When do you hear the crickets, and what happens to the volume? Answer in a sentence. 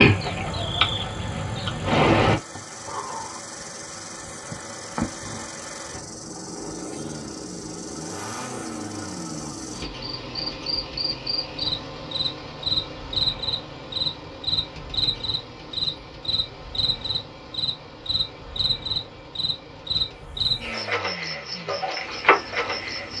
The crickets can be heard from 0.0 to 23.1 s, getting quieter then louder.